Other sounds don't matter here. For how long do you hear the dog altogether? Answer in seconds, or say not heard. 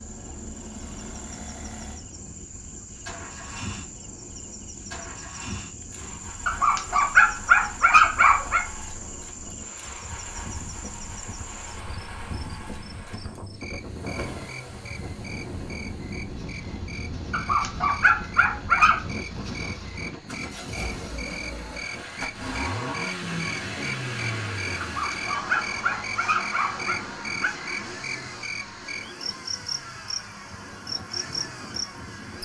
7 s.